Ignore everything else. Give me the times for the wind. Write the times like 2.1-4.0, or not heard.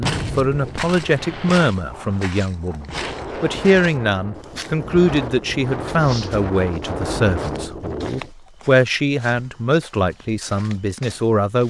0.0-8.3.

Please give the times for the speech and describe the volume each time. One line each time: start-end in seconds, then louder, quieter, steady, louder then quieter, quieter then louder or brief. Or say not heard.
0.0-11.6 steady.